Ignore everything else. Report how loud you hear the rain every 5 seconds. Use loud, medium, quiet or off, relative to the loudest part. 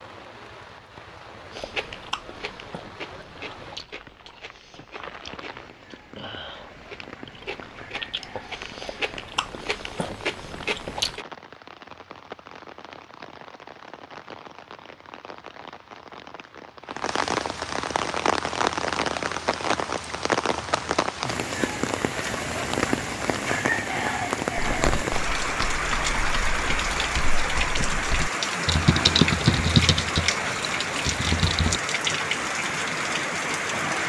quiet, quiet, quiet, loud, loud, loud, loud.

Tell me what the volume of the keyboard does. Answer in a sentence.
The loudness of the keyboard goes up, then down.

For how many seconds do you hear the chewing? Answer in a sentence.
You can hear the chewing for 10 seconds altogether.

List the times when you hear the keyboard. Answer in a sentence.
You can hear the keyboard from 24.8 to 31.8 s.